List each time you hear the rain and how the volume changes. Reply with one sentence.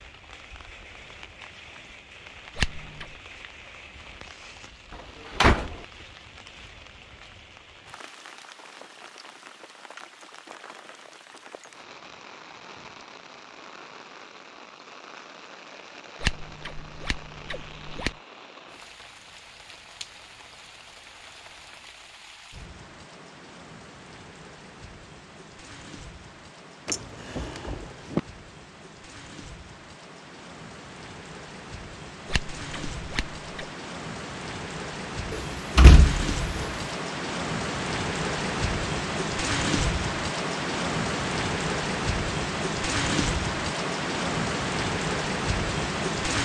You can hear the rain from 0.0 to 46.4 s, getting louder.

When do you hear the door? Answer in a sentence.
You can hear the door from 5.3 to 5.8 s, from 26.9 to 28.2 s and from 35.3 to 36.7 s.